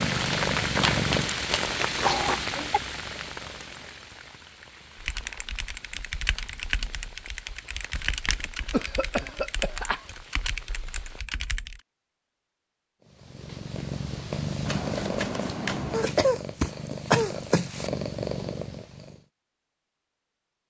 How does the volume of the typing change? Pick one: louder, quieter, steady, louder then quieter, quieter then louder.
steady.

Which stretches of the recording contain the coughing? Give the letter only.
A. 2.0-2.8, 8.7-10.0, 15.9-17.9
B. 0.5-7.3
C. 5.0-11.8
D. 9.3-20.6
A.